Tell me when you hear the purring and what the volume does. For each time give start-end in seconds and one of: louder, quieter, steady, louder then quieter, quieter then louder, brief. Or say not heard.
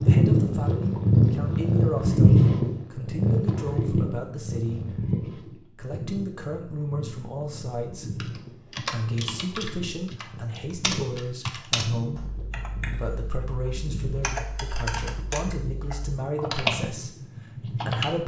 0.0-18.1 quieter.